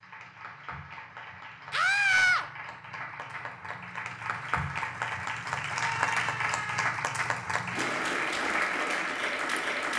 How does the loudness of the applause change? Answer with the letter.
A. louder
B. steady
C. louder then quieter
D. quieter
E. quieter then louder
A.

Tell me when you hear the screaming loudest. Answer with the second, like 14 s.
2 s.